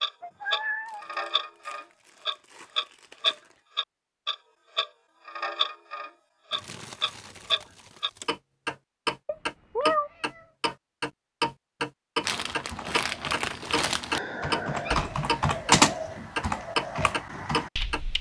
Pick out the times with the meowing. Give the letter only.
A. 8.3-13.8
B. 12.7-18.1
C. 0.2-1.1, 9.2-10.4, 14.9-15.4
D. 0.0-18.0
C.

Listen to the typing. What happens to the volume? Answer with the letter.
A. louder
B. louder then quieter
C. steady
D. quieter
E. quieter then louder
B.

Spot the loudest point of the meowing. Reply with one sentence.
The loudest moment of the meowing is at 10 seconds.